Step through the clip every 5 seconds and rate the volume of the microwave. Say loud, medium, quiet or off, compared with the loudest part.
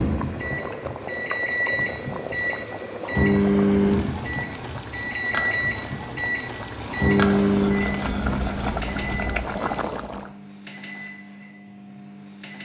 loud, loud, quiet.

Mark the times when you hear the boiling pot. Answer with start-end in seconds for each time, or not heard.
0.0-10.3.